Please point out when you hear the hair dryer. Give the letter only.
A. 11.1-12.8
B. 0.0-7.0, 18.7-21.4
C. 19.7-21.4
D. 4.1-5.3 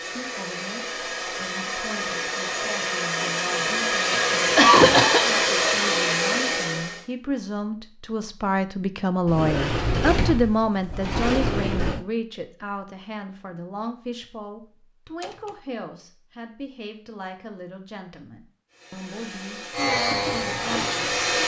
B.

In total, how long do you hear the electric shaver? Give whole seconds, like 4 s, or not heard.
2 s.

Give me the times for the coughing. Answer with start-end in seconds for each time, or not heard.
4.1-5.3.